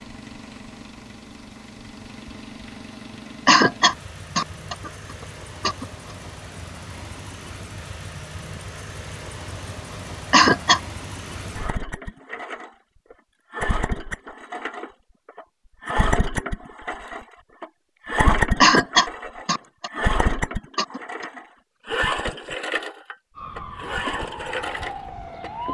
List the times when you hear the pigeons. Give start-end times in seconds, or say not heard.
not heard.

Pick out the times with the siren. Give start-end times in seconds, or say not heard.
23.4-25.6.